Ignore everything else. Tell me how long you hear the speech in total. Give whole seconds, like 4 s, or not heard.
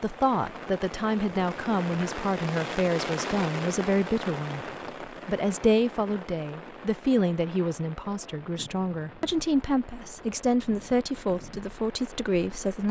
12 s.